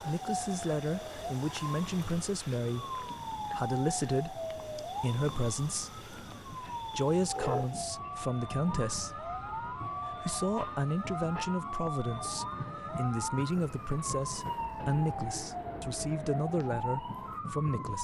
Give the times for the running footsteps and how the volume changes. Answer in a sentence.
The running footsteps can't be heard in this clip.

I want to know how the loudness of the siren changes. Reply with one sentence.
The loudness of the siren stays about the same.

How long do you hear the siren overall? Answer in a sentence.
You can hear the siren for 18 seconds altogether.